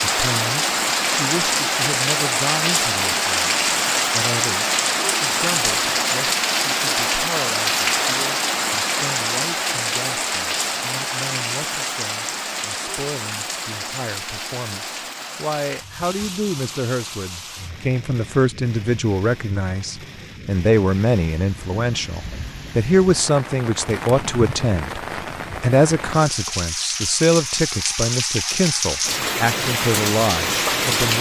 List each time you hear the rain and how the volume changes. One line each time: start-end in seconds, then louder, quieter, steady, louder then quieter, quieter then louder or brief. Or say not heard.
0.0-31.1 quieter then louder.